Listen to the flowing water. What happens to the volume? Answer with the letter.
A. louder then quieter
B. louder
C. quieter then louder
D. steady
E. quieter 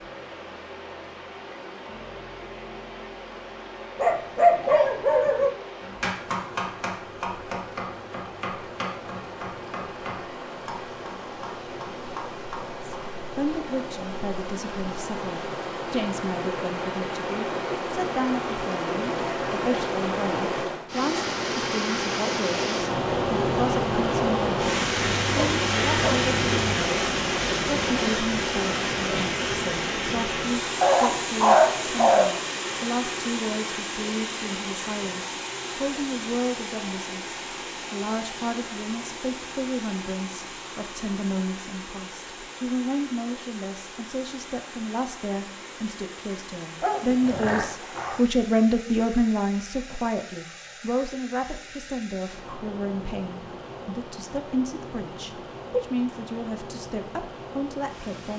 A.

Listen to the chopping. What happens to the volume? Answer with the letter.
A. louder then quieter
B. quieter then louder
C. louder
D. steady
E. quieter
E.